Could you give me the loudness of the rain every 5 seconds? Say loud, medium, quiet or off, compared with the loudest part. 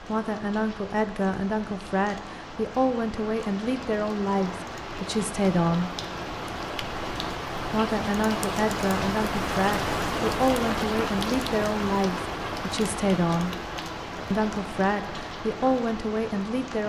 medium, loud, loud, medium.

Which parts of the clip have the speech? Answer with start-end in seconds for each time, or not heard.
0.0-5.9, 7.7-13.5, 14.3-16.8.